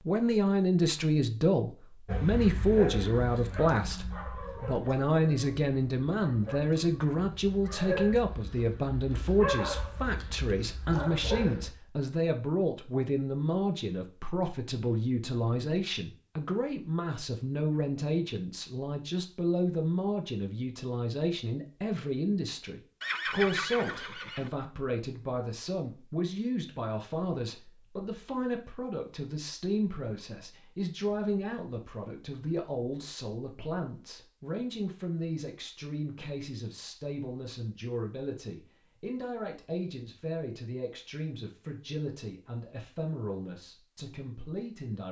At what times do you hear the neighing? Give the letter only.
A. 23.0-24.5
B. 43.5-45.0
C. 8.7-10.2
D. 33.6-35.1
A.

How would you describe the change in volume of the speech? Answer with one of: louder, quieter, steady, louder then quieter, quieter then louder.
quieter.